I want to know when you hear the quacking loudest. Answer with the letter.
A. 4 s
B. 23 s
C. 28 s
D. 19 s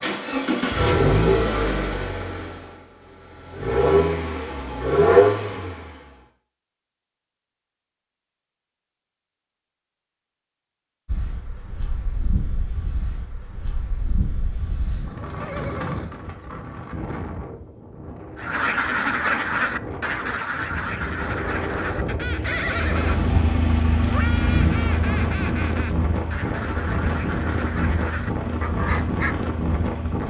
D.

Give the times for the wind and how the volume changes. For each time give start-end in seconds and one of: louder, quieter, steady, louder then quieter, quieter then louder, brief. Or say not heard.
11.1-30.2 louder.